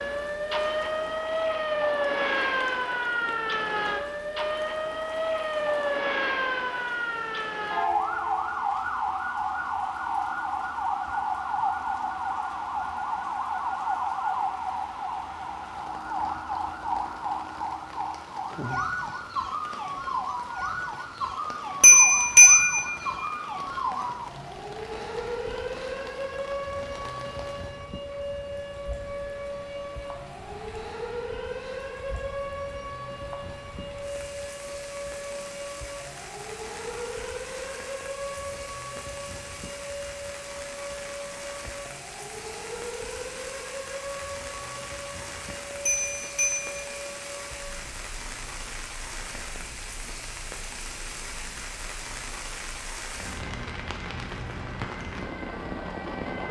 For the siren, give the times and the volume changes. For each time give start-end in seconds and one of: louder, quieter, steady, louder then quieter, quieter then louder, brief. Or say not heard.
0.0-56.4 quieter.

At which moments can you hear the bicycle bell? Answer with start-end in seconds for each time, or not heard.
21.8-23.1, 45.9-46.9.